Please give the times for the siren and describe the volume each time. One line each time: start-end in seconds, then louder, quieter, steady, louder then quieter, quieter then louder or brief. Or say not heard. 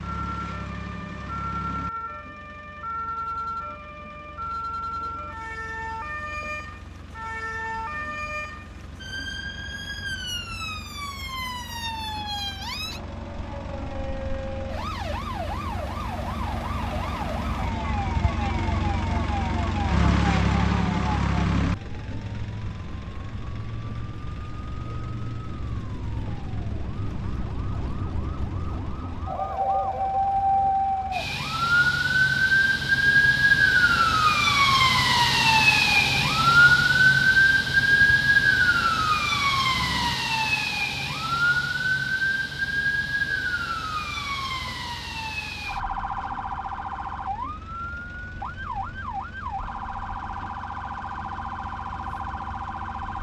0.0-53.1 louder then quieter.